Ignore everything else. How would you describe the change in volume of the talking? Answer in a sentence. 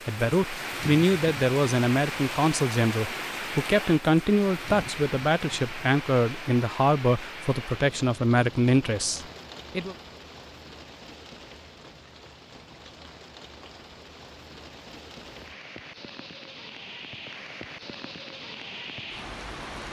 The volume of the talking stays about the same.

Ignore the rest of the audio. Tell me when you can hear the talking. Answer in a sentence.
You can hear the talking from 0.1 to 9.9 s.